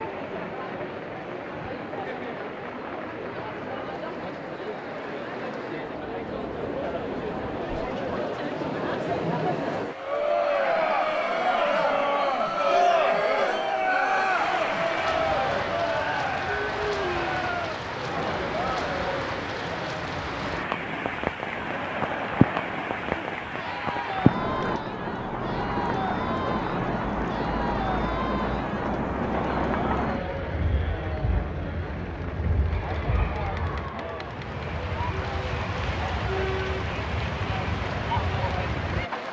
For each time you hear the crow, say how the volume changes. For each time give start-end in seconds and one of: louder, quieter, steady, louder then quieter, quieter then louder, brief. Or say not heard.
not heard.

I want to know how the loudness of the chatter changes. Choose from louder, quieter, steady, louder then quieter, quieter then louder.
louder then quieter.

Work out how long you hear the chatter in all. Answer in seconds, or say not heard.
39 s.